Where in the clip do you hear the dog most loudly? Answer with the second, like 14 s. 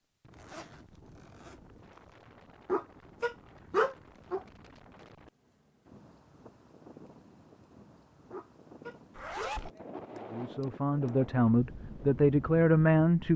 4 s.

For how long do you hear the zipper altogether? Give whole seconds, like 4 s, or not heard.
2 s.